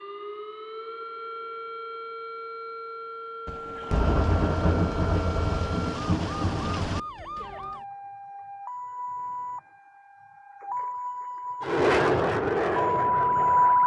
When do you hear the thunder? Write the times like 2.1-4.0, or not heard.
3.5-7.0.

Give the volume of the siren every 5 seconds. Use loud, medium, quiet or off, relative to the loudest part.
quiet, quiet, loud.